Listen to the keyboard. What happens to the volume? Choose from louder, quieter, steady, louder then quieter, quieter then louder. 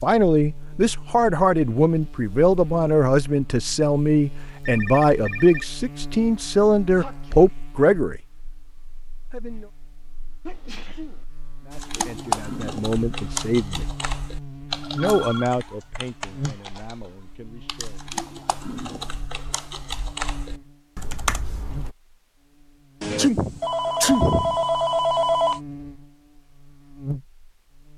quieter then louder.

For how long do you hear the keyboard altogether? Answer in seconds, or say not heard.
10 s.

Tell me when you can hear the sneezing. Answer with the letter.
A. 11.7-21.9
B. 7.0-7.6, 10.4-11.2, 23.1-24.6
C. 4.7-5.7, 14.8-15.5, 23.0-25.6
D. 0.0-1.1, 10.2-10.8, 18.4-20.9
B.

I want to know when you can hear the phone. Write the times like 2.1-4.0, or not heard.
4.7-5.7, 14.8-15.5, 23.0-25.6.